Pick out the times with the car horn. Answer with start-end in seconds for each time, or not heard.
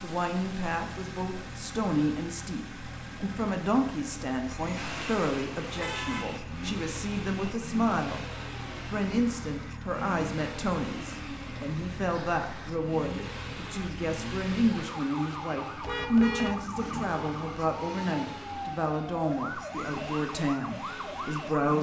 4.8-6.3, 15.8-17.0.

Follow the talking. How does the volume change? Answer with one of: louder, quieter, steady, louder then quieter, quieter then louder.
steady.